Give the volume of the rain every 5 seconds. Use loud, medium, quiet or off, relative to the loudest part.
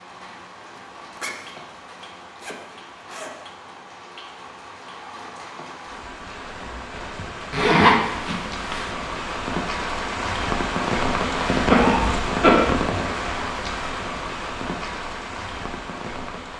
quiet, medium, loud, medium.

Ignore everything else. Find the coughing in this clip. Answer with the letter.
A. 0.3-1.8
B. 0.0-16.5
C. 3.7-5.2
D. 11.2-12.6
D.